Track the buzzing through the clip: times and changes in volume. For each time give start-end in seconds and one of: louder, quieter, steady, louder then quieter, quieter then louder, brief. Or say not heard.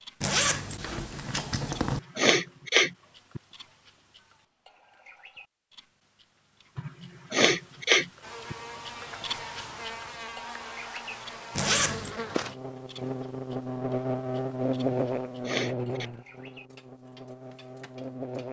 8.2-18.4 louder then quieter.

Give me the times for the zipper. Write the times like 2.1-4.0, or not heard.
0.2-2.0, 11.6-12.2.